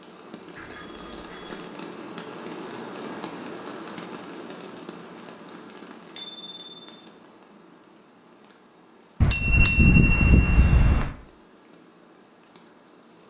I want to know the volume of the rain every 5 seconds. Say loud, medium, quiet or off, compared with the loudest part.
loud, medium, quiet.